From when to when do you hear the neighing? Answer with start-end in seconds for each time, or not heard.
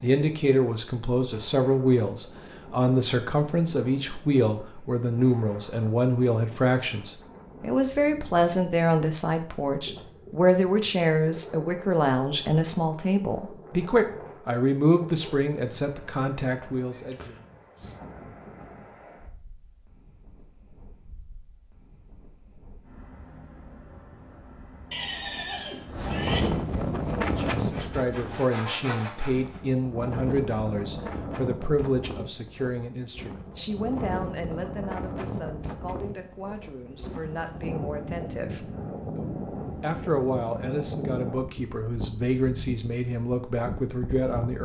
16.9-17.9, 24.9-26.4.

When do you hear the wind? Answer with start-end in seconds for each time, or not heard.
0.0-44.6.